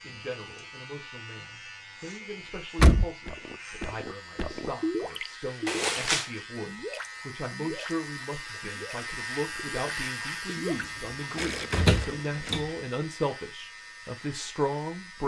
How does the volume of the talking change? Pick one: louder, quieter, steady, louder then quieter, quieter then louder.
louder.